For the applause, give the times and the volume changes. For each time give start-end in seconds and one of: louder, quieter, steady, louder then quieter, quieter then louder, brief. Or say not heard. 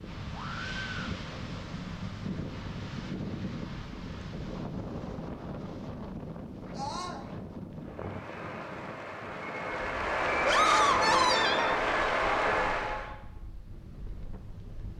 7.8-13.2 louder.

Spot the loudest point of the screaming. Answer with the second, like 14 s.
11 s.